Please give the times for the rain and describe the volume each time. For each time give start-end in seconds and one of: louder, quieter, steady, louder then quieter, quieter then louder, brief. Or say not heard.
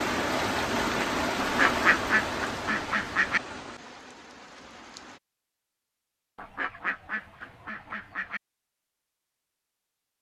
0.0-5.2 quieter.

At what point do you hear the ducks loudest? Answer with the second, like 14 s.
2 s.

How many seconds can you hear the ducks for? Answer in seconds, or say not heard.
4 s.